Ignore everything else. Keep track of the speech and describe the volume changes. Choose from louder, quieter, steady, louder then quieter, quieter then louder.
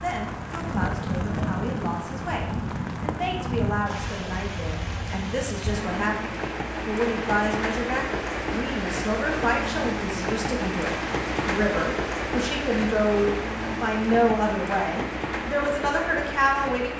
louder.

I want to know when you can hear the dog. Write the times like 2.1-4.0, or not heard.
not heard.